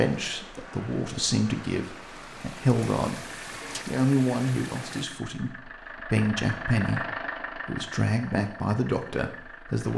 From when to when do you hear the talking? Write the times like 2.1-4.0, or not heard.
0.0-3.2, 3.9-9.9.